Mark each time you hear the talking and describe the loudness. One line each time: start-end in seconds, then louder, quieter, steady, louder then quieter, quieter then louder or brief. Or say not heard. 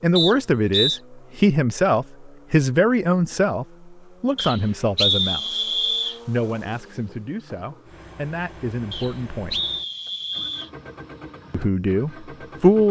0.0-9.6 quieter
11.5-12.8 brief.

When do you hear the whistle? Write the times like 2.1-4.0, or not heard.
0.1-1.0, 4.3-6.2, 8.9-10.7.